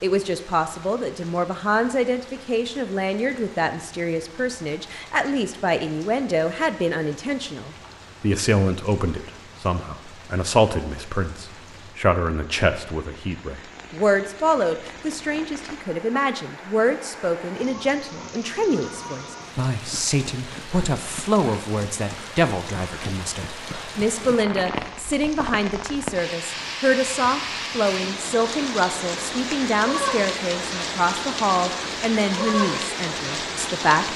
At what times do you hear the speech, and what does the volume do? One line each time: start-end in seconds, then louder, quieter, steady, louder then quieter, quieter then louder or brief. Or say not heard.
0.0-34.1 steady.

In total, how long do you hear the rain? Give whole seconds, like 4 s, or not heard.
34 s.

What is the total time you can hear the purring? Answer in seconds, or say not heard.
not heard.